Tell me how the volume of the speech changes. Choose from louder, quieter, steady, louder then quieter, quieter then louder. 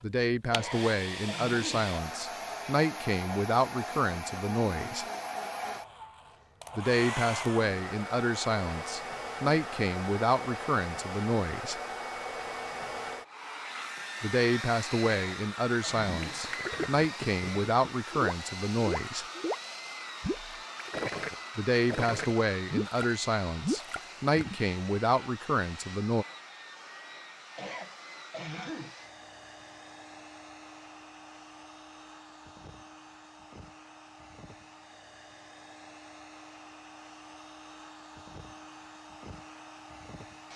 steady.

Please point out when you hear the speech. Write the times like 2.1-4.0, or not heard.
0.0-5.0, 6.8-11.8, 14.2-19.2, 21.6-26.2.